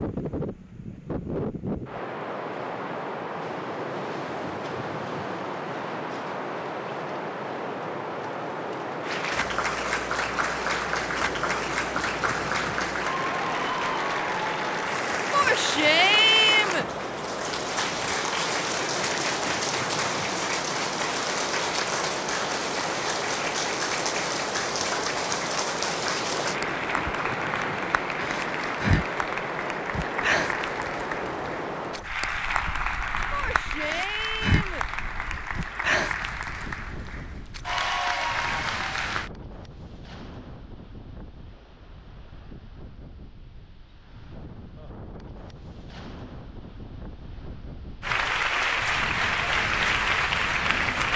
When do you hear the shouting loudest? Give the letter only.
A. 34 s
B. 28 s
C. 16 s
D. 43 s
C.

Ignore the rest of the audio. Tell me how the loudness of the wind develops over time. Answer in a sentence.
The loudness of the wind goes down.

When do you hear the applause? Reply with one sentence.
You can hear the applause from 9.0 to 39.3 s and from 48.0 to 51.1 s.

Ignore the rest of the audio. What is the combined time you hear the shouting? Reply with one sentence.
The shouting can be heard for 3 seconds in total.